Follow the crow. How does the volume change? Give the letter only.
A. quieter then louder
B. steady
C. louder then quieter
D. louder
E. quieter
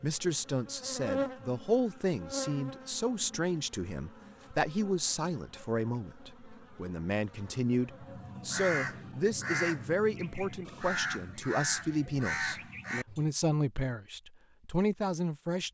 B.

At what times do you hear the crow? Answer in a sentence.
You can hear the crow from 7.8 to 13.3 s.